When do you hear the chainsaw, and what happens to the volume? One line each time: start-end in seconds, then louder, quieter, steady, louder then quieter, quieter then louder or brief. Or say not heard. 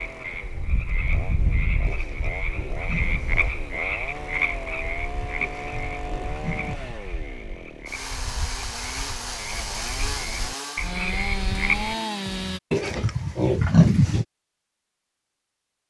0.0-12.6 louder.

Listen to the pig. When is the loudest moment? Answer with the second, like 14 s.
14 s.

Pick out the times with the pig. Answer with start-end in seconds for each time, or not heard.
1.9-3.6, 5.4-7.0, 12.7-14.2.